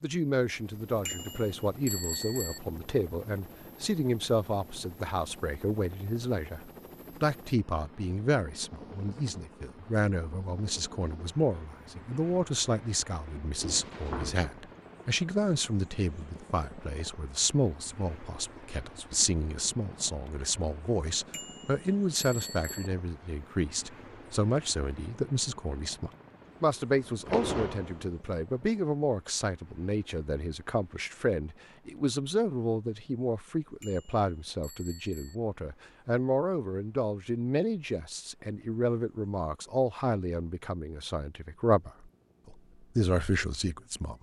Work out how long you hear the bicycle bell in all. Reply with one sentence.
You can hear the bicycle bell for 5 seconds altogether.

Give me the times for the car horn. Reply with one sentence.
You can't hear the car horn here.